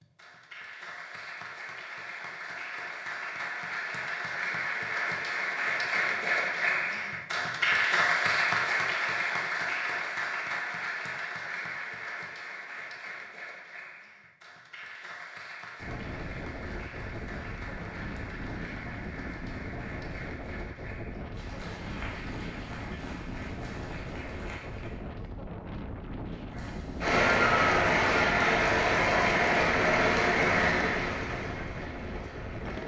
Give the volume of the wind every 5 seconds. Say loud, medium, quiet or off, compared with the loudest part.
off, off, off, loud, loud, loud, loud.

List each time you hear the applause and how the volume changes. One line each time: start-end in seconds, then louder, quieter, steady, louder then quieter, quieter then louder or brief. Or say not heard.
0.0-25.1 louder then quieter
26.5-32.8 quieter.